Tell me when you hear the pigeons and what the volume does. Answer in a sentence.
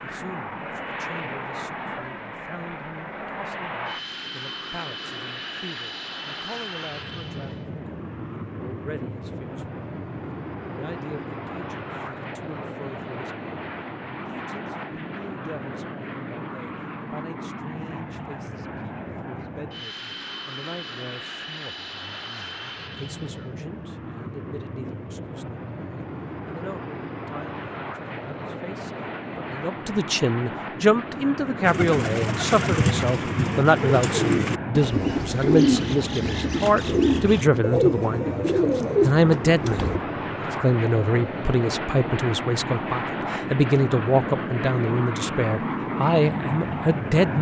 You can hear the pigeons from 31.6 to 40.0 s, at a steady volume.